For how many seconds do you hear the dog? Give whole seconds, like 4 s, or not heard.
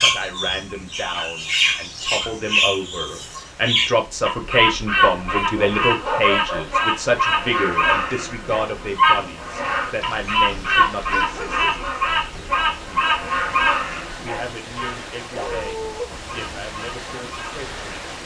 6 s.